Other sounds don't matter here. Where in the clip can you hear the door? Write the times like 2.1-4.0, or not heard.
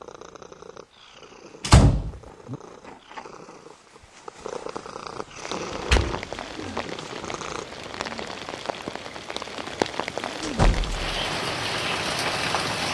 1.6-2.5, 5.9-6.8, 10.4-11.1.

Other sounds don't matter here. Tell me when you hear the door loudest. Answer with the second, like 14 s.
2 s.